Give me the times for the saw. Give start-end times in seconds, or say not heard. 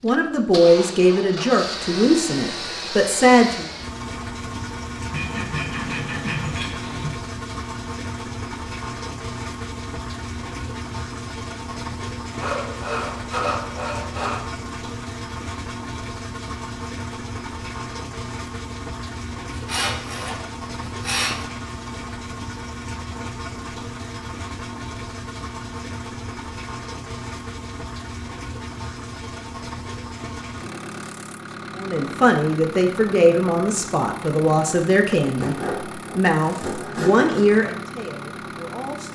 5.1-7.2, 12.4-14.4, 19.5-21.4, 35.4-37.5.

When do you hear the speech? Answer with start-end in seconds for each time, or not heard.
0.0-3.6, 31.8-39.0.